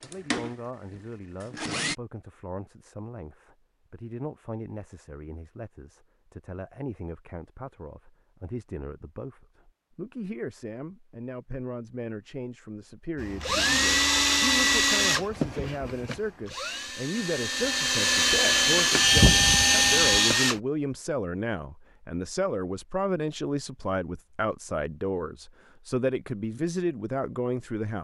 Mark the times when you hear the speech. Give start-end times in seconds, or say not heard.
0.0-27.9.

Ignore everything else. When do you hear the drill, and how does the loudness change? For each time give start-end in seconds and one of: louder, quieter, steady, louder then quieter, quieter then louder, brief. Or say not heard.
0.0-1.9 brief
13.2-20.6 quieter then louder.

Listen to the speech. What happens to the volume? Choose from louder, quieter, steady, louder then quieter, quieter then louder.
louder.